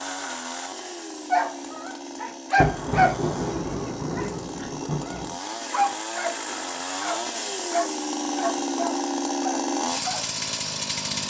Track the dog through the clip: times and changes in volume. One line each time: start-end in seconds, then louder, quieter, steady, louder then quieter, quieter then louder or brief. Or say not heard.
1.3-3.2 brief
4.2-10.7 louder then quieter.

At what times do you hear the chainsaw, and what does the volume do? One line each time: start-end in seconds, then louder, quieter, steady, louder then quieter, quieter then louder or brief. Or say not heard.
0.0-11.2 louder.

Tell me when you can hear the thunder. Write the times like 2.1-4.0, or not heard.
2.5-5.3.